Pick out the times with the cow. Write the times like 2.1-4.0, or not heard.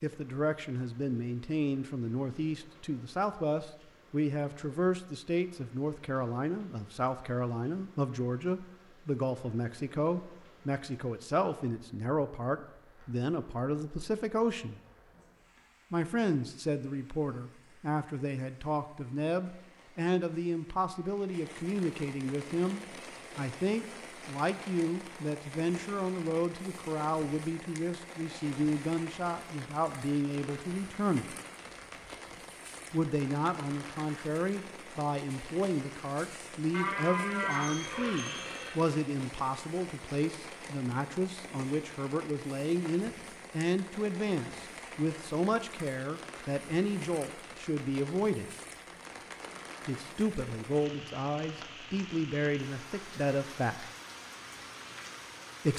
36.7-38.8.